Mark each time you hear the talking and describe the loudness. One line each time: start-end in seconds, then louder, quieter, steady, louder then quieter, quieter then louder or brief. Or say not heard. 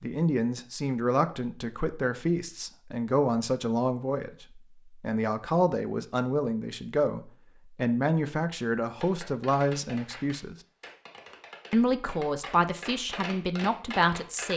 0.0-10.6 steady
11.7-14.5 brief.